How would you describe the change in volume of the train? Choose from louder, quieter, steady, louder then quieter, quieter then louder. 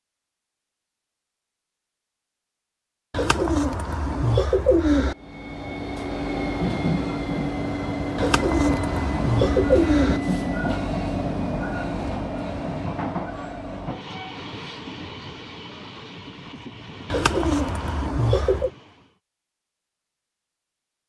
quieter.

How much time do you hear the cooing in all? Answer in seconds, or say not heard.
6 s.